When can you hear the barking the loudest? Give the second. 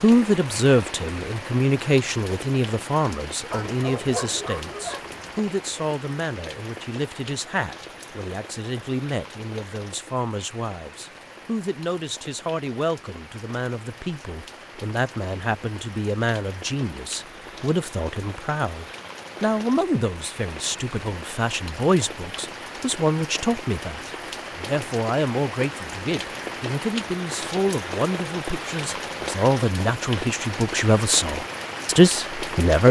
4 s.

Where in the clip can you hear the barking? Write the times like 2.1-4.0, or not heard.
3.5-5.5.